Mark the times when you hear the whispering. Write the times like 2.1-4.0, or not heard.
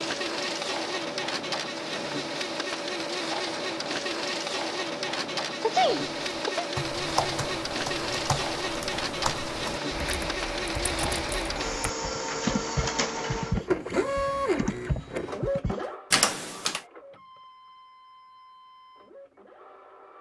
not heard.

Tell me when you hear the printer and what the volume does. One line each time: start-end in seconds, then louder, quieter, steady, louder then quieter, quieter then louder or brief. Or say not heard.
0.0-20.1 quieter.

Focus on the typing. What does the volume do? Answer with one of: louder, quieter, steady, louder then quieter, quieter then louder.
louder.